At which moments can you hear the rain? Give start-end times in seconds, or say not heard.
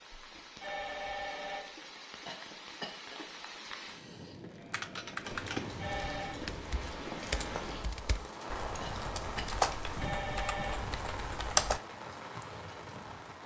0.0-13.4.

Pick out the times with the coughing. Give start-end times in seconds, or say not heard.
2.2-3.1, 8.8-9.6.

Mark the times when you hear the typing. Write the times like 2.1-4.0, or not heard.
4.5-11.8.